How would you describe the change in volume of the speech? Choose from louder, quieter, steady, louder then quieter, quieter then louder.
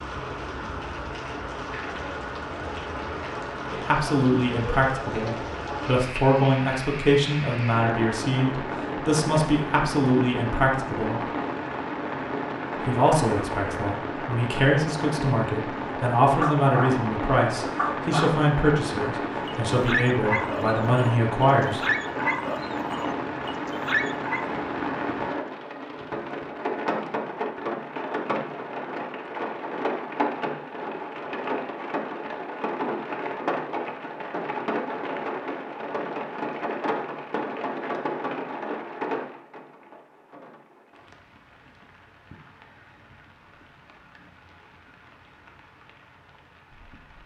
steady.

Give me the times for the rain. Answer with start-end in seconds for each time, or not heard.
0.0-47.2.